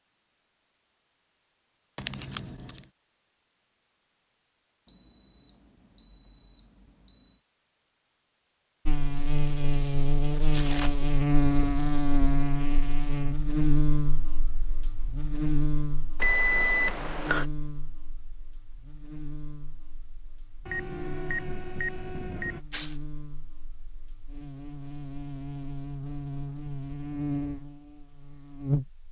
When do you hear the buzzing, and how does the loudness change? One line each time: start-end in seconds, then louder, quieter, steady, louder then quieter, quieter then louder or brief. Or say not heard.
8.8-29.0 quieter then louder.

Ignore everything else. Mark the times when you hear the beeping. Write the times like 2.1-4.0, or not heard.
4.8-7.5, 16.2-17.4, 20.6-22.6.